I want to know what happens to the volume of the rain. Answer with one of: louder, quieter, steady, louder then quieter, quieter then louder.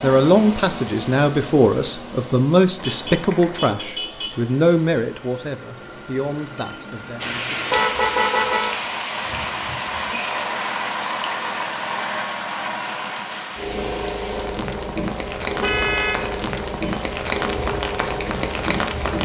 quieter then louder.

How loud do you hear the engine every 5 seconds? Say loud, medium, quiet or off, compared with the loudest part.
medium, medium, loud, loud.